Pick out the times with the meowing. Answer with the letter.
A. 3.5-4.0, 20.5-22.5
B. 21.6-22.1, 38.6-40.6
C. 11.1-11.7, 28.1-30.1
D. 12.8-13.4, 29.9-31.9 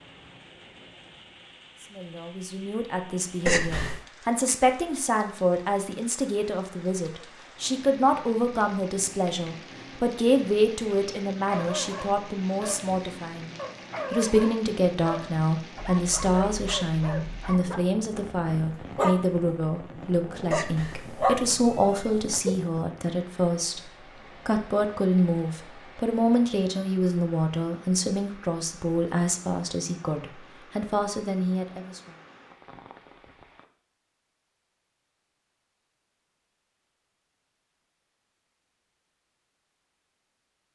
A.